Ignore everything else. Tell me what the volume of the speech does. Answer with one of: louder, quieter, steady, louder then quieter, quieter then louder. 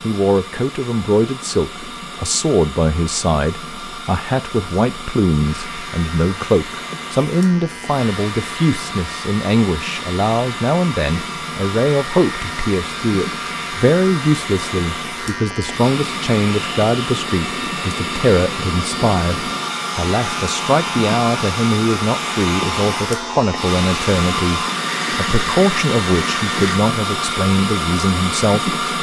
steady.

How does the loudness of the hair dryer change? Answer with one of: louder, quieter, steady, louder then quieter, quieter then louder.
louder.